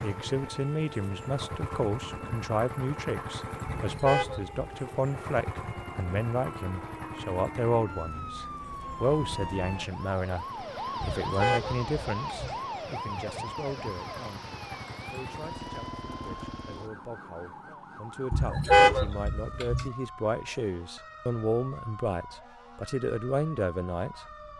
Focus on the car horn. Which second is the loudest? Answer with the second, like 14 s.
19 s.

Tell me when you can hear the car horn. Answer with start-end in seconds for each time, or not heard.
3.7-4.8, 11.0-12.6, 18.3-19.9.